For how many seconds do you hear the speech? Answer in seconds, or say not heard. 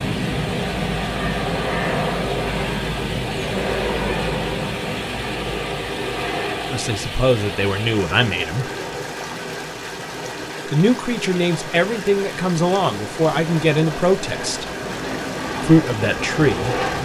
7 s.